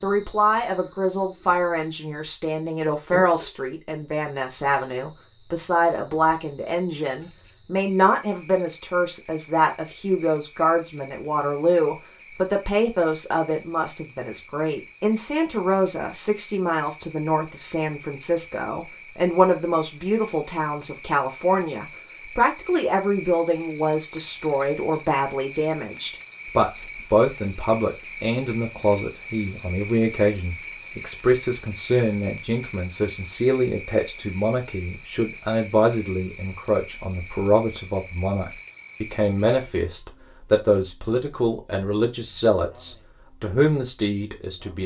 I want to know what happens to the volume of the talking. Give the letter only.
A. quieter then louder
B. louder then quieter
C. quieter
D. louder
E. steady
E.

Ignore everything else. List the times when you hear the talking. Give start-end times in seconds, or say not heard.
0.0-44.8.